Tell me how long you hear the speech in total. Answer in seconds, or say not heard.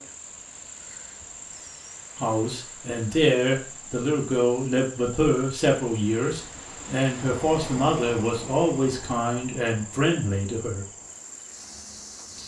9 s.